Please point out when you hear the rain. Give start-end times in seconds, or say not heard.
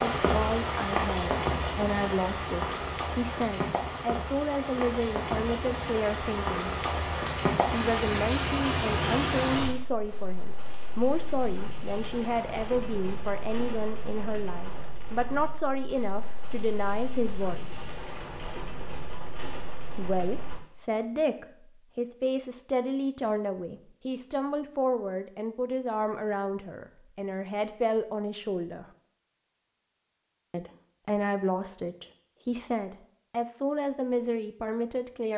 0.0-20.6.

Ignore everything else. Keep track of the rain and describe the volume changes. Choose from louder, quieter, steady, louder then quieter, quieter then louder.
quieter.